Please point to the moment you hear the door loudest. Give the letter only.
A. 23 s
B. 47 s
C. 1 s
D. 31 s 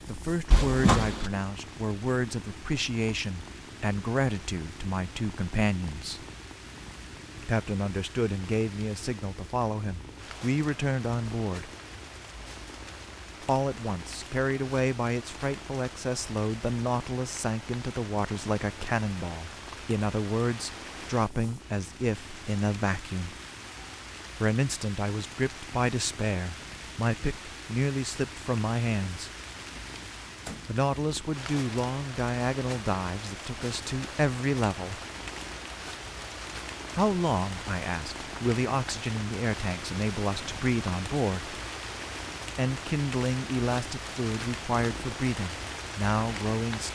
C.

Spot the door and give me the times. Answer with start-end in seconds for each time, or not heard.
0.5-1.3, 29.7-30.6.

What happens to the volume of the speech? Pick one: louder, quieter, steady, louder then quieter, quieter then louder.
steady.